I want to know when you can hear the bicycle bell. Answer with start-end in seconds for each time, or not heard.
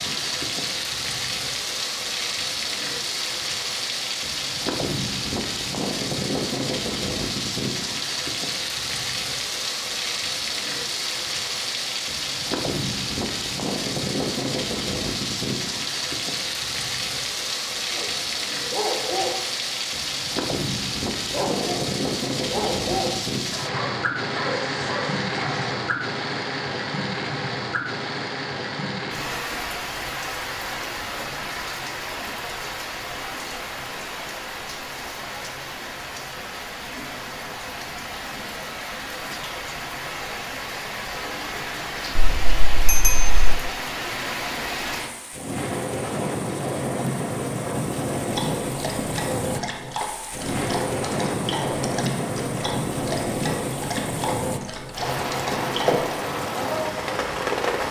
42.1-43.6.